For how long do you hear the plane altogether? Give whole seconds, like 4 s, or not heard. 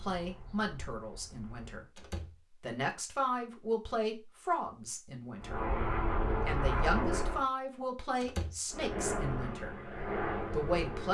6 s.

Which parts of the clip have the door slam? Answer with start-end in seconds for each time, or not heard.
1.9-2.4, 8.2-8.6.